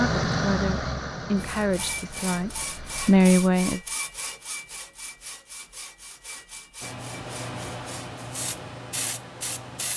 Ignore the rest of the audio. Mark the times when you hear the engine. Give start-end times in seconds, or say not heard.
0.0-3.2.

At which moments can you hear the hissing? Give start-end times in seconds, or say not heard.
6.8-9.9.